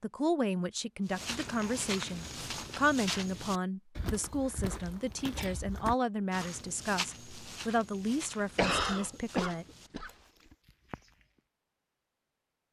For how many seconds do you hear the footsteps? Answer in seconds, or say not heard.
10 s.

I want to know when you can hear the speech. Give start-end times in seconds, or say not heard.
0.0-9.7.